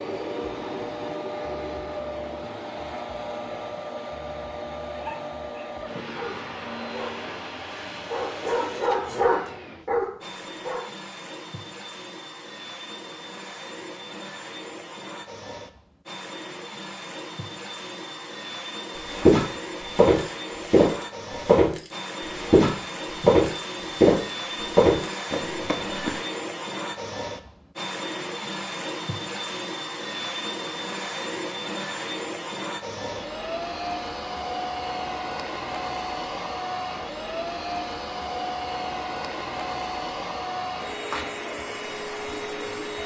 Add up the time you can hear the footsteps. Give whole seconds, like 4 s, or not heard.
7 s.